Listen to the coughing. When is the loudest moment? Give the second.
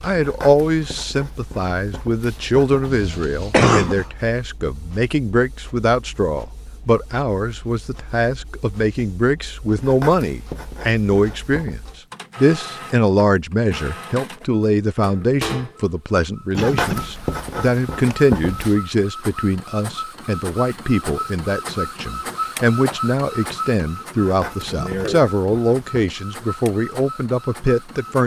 4 s.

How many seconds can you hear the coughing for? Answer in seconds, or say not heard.
2 s.